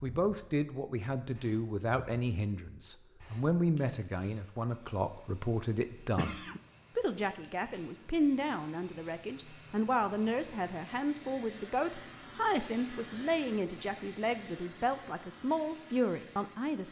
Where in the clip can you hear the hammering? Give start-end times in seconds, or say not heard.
not heard.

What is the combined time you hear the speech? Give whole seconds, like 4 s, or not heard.
17 s.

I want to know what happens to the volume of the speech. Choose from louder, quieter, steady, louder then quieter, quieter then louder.
steady.